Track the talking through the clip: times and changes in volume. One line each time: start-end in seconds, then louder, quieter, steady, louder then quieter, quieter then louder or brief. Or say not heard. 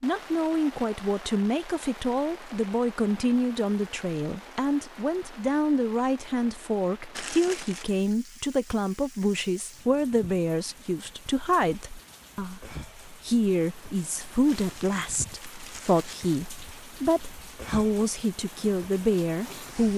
0.0-19.9 steady.